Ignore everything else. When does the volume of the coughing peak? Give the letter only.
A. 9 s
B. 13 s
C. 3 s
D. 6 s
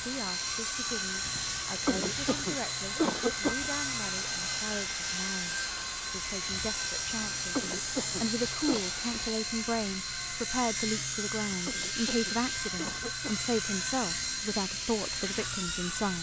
C.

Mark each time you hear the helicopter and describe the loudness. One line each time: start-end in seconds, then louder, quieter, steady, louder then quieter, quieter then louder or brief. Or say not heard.
0.0-16.1 steady.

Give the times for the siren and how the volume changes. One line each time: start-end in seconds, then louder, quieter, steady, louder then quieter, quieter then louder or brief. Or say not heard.
not heard.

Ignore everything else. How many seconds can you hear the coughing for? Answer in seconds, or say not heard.
5 s.